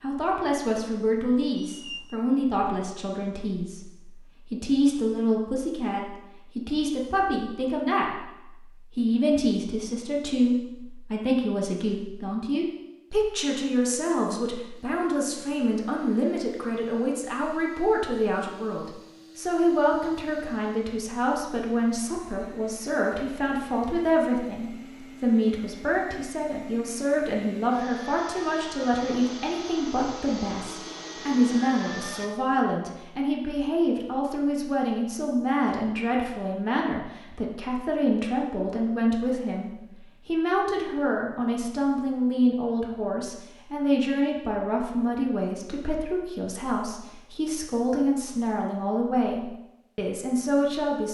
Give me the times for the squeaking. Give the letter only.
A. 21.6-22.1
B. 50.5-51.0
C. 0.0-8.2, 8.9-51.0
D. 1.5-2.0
D.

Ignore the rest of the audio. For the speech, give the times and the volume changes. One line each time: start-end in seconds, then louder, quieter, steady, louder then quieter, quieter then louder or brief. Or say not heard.
0.0-8.2 steady
8.9-51.0 steady.